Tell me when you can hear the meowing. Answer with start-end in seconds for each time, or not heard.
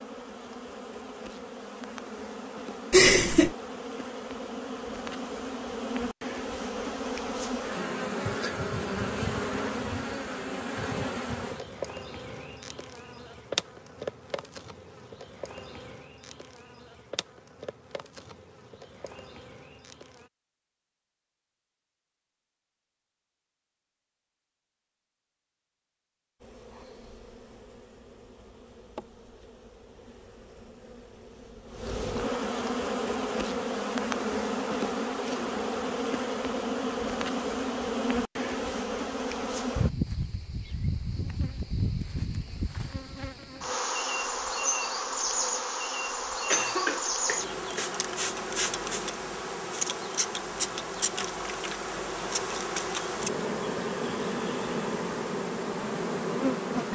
not heard.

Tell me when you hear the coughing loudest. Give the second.
3 s.